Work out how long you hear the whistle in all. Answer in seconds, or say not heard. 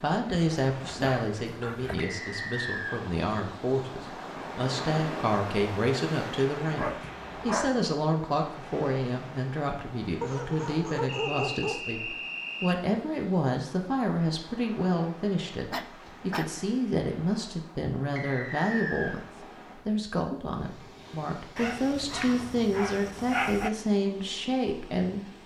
4 s.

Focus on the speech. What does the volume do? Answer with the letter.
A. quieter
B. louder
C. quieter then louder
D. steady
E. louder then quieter
D.